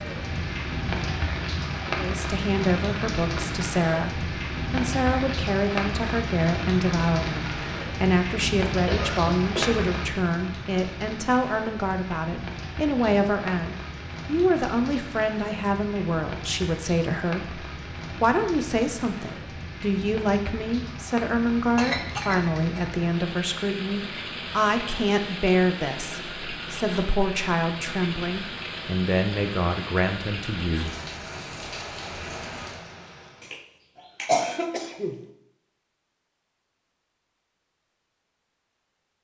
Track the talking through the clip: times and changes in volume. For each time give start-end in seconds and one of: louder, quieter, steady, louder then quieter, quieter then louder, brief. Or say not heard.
1.9-30.9 steady.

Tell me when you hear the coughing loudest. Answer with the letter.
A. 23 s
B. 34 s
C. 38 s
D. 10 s
B.